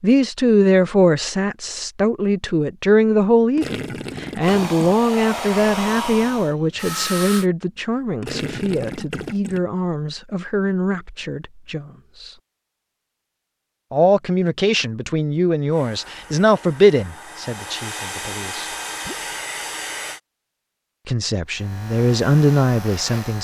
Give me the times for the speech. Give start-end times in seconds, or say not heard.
0.0-12.3, 13.9-18.6, 21.1-23.3.